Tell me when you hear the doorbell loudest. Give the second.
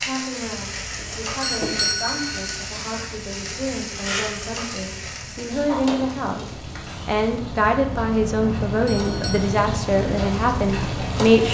2 s.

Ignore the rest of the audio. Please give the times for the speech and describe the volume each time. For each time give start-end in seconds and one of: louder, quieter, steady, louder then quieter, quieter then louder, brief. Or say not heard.
0.0-11.5 louder.